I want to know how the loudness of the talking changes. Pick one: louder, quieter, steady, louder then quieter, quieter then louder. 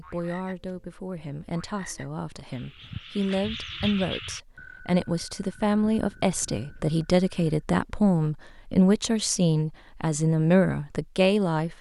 louder.